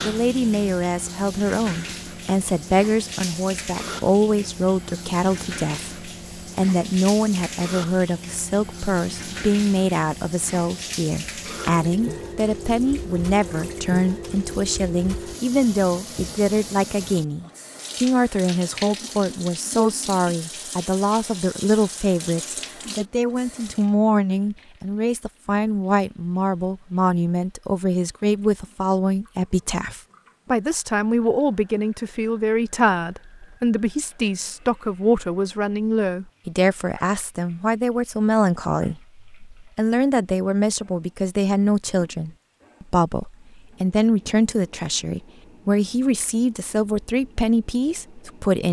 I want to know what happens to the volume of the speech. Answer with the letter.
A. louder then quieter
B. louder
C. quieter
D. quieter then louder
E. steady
E.